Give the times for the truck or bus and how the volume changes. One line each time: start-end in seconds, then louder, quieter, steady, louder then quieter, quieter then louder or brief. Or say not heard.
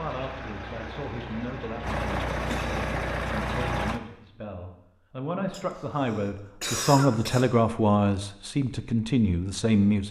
0.0-4.0 louder.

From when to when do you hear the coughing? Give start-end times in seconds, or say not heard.
2.4-2.9, 5.5-7.5.